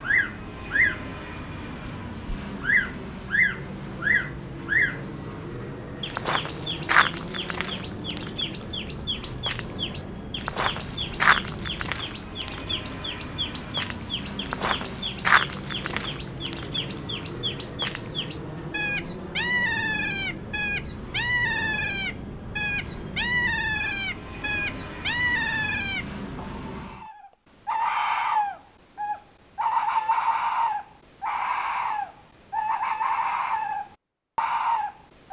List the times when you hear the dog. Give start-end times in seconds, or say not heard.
not heard.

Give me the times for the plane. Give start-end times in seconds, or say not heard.
0.0-27.1.